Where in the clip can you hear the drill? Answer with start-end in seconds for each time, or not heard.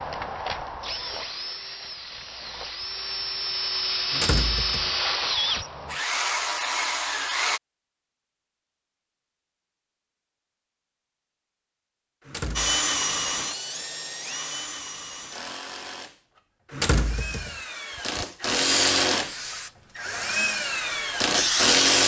0.0-7.6, 12.6-22.0.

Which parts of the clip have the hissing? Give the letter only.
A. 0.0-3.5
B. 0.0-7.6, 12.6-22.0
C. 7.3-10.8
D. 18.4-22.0
D.